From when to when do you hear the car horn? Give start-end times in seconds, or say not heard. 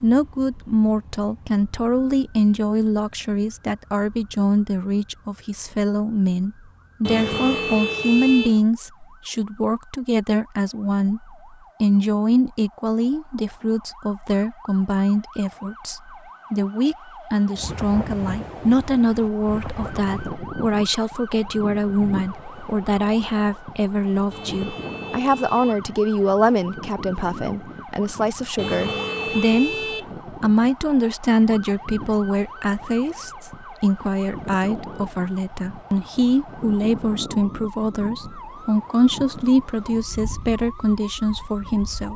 7.0-8.6, 24.3-25.9, 28.6-30.1.